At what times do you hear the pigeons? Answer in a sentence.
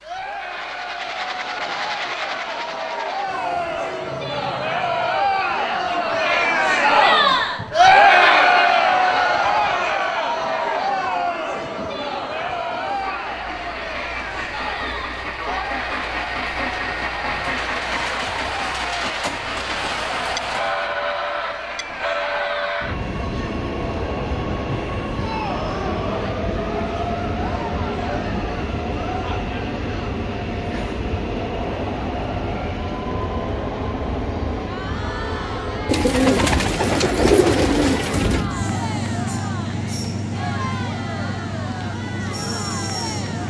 You can hear the pigeons from 35.9 to 38.5 s.